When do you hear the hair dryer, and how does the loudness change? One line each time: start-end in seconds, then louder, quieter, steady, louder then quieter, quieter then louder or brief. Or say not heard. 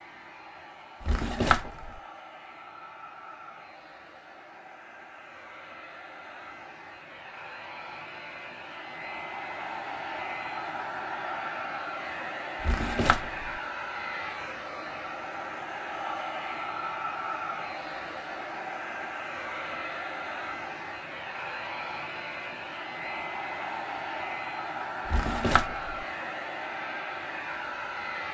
0.0-28.2 louder.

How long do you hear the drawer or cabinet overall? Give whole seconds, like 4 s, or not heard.
3 s.